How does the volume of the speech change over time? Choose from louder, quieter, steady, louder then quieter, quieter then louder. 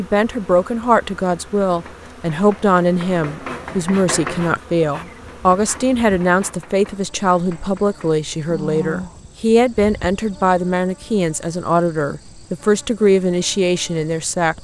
steady.